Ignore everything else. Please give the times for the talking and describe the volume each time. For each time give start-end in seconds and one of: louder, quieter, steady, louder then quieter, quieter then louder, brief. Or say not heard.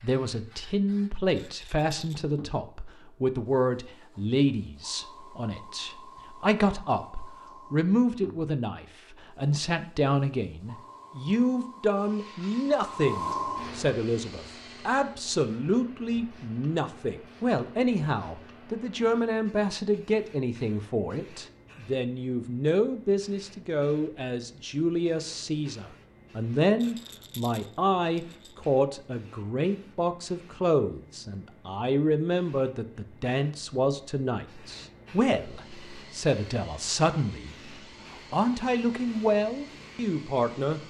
0.0-40.8 steady.